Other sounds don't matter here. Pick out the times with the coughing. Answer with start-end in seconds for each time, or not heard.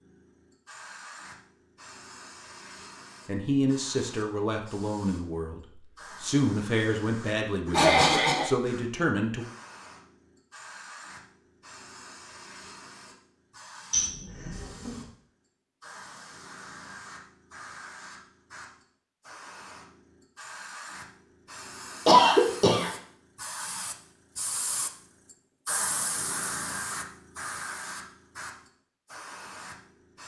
7.7-8.5, 13.9-14.9, 22.1-22.9.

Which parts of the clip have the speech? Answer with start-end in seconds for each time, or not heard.
3.2-9.4.